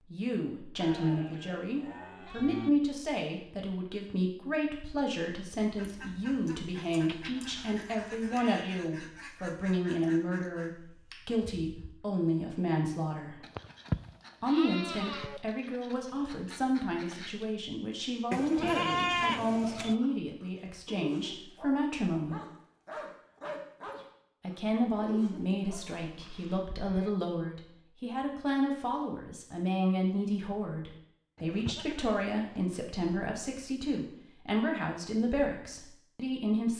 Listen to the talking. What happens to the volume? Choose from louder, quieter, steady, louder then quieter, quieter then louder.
steady.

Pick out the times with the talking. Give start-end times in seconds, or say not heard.
0.1-13.4, 14.4-22.4, 24.4-36.7.